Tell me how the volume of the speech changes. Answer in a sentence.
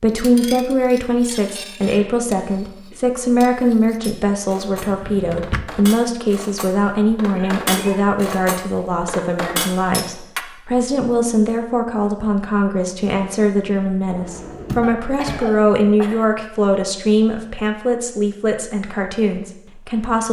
The loudness of the speech stays about the same.